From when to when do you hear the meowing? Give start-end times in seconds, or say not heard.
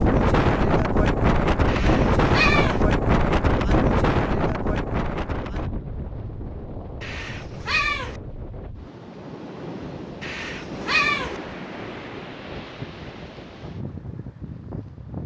1.6-2.9, 7.0-8.2, 10.2-11.4.